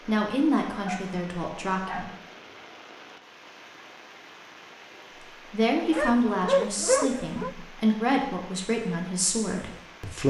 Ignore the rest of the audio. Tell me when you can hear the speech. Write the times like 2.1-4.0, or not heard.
0.1-2.1, 5.5-10.2.